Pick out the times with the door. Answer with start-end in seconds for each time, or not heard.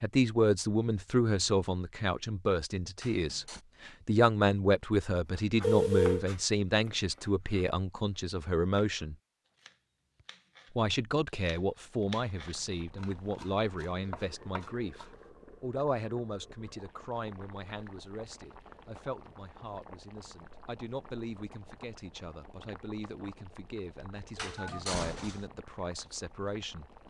3.0-3.6, 24.4-25.5.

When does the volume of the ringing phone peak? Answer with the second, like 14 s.
6 s.